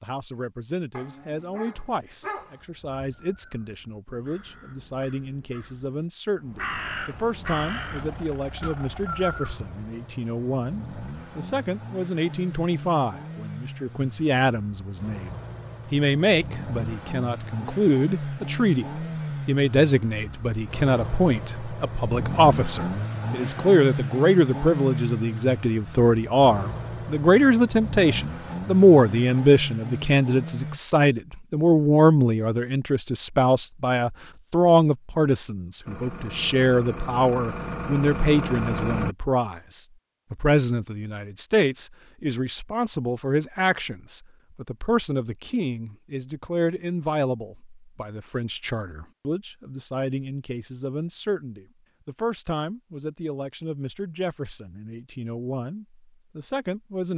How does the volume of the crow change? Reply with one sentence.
The loudness of the crow goes up.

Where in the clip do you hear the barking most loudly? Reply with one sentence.
The volume of the barking peaks at 2 seconds.